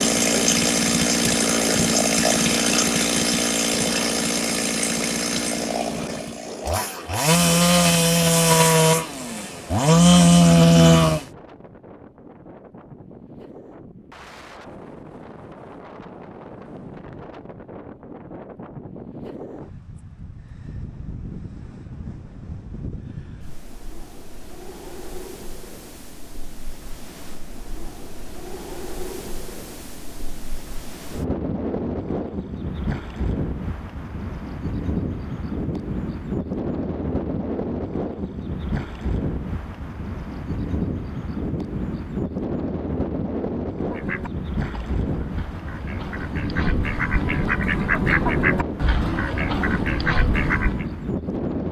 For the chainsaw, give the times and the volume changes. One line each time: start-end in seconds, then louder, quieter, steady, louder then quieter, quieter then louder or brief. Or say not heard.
0.0-11.2 quieter then louder.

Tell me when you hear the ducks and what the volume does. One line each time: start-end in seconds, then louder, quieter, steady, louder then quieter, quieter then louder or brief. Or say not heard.
43.9-50.9 louder.